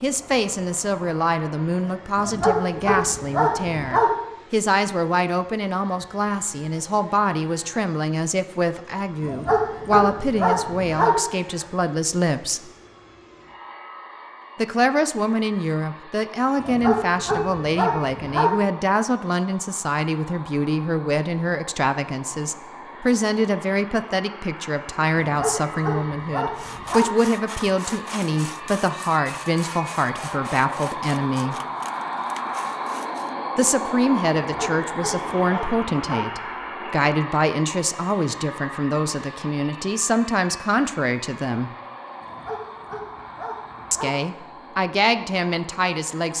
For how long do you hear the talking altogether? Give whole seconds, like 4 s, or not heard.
40 s.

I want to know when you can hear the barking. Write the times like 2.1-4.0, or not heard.
2.1-4.1, 9.2-11.2, 16.6-18.6, 25.2-27.1, 34.4-36.2, 42.2-44.1.